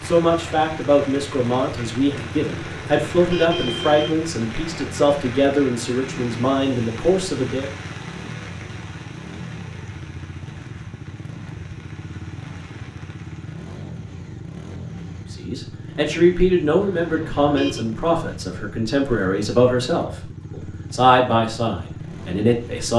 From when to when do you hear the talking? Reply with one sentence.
You can hear the talking from 0.0 to 7.7 s and from 15.3 to 22.9 s.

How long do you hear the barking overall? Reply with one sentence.
The barking can't be heard in this clip.